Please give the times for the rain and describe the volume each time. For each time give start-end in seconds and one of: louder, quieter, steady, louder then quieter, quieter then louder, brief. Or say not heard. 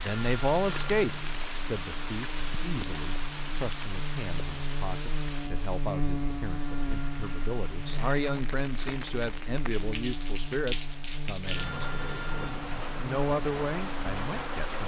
0.0-14.8 quieter then louder.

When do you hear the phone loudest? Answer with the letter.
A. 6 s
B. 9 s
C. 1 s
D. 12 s
D.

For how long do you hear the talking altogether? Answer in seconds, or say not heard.
15 s.